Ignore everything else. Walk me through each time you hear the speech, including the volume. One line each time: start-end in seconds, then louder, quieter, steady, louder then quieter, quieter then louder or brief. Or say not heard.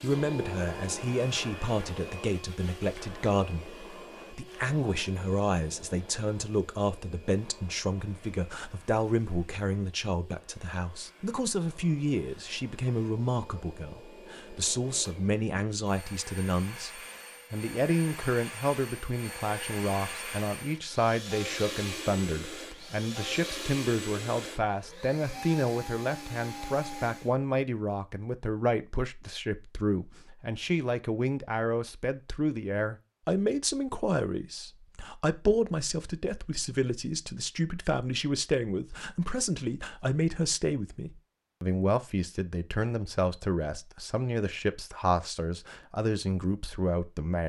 0.0-47.4 steady.